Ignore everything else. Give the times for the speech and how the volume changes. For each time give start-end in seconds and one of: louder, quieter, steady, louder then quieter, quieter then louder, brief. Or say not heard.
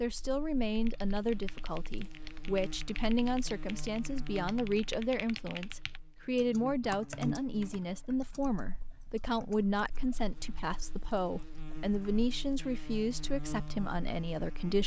0.0-14.8 steady.